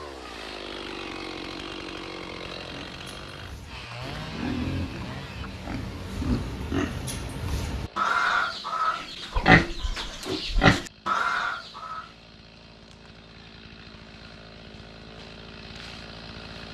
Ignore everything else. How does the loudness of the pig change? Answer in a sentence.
The volume of the pig goes up.